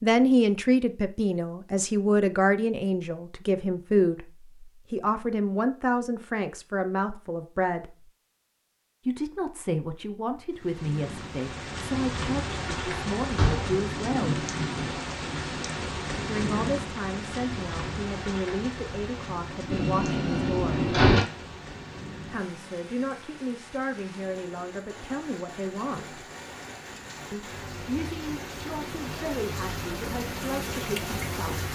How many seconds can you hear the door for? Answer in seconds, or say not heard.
2 s.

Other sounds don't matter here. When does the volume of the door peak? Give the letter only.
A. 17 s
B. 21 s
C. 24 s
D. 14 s
B.